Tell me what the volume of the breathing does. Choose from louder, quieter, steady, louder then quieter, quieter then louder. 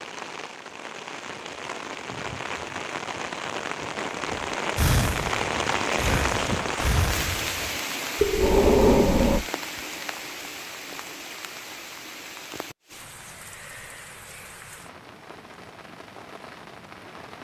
quieter then louder.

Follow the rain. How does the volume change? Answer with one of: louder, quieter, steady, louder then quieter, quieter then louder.
louder then quieter.